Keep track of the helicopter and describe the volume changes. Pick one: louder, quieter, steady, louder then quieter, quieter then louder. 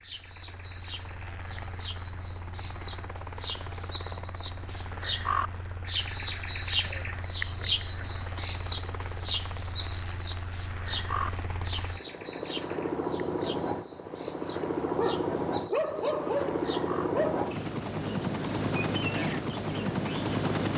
louder.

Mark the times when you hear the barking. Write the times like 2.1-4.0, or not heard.
14.9-17.4.